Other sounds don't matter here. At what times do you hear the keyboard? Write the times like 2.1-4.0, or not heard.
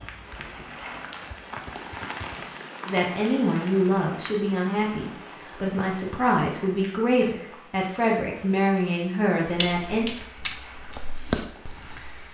0.0-2.5, 9.4-12.2.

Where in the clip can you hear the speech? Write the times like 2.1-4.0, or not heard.
2.9-10.1.